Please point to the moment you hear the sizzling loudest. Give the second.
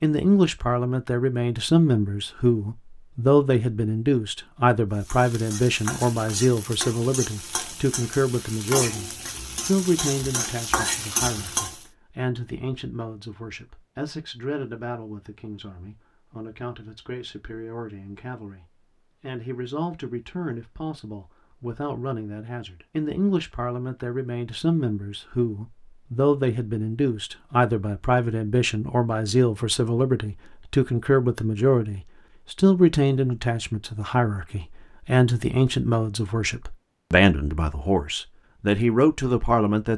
11 s.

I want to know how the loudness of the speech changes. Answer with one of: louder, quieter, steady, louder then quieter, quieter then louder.
quieter then louder.